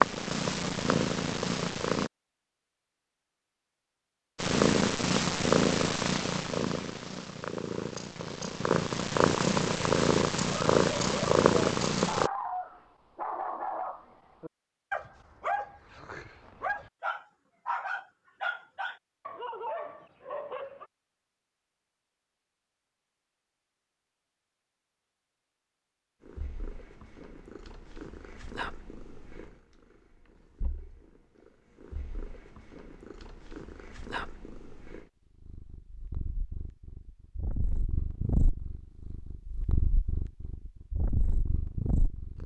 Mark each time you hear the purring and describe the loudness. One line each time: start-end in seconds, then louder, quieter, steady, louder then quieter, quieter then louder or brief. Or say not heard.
0.0-2.1 brief
4.3-12.3 quieter then louder
26.2-42.4 quieter then louder.